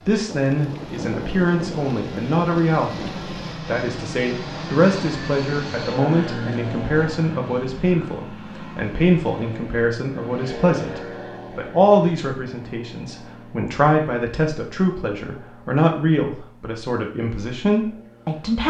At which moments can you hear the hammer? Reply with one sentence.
You can't hear the hammer here.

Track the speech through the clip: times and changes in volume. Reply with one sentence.
You can hear the speech from 0.1 to 18.6 s, at a steady volume.